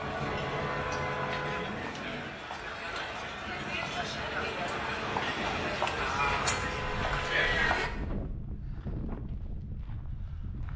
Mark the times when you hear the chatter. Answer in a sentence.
The chatter can be heard from 0.0 to 7.9 s.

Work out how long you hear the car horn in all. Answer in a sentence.
The car horn can be heard for 4 seconds in total.